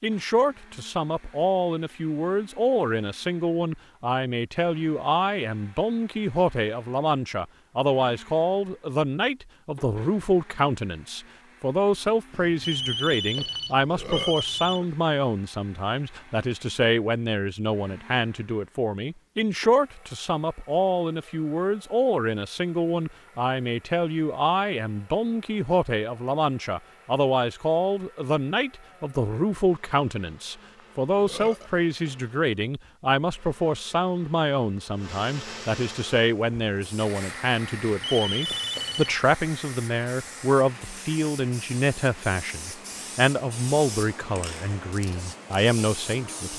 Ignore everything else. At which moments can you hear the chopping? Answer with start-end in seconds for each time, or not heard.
not heard.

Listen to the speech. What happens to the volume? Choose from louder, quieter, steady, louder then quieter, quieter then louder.
steady.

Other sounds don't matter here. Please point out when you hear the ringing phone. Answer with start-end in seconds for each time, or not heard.
12.3-14.8, 38.0-39.2.